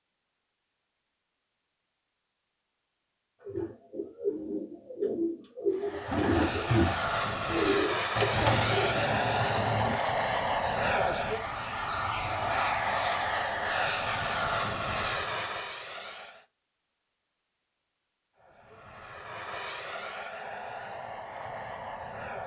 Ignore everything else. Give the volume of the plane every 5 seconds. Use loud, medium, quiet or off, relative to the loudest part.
off, loud, loud, medium, medium.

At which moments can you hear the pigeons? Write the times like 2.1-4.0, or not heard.
3.4-10.0.